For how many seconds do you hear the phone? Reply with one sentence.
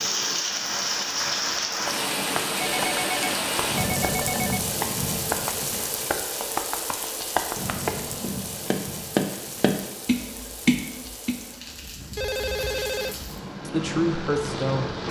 The phone can be heard for 3 seconds in total.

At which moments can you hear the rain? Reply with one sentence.
You can hear the rain from 0.0 to 15.0 s.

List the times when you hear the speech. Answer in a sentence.
You can hear the speech from 13.7 to 15.0 s.